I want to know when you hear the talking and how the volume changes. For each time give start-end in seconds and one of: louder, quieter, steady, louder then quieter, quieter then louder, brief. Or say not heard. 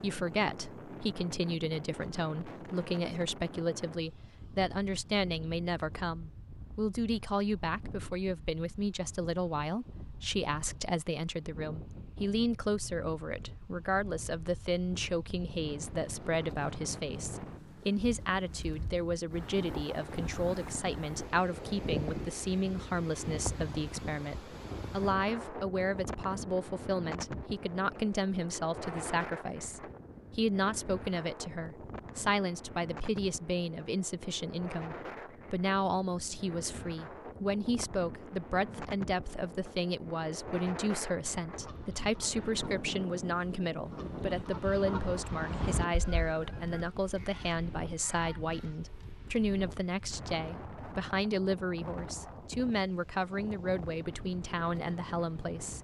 0.0-55.7 steady.